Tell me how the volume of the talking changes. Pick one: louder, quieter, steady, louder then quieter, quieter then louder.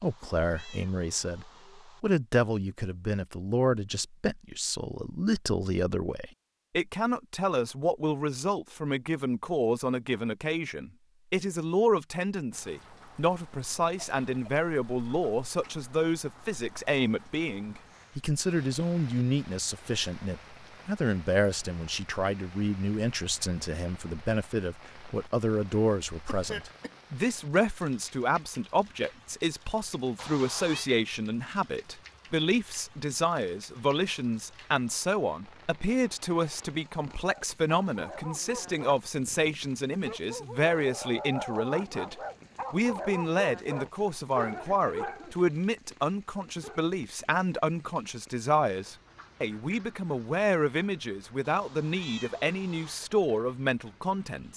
steady.